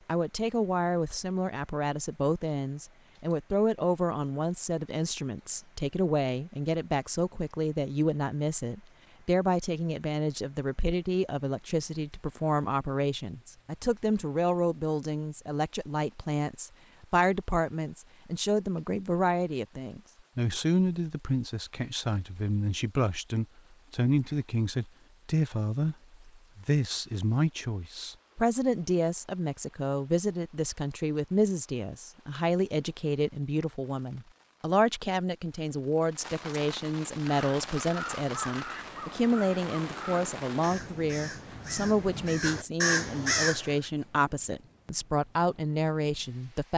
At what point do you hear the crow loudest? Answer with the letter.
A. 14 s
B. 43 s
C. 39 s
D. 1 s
B.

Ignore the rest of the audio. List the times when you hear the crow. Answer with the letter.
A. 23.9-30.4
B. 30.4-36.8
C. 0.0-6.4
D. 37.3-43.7
D.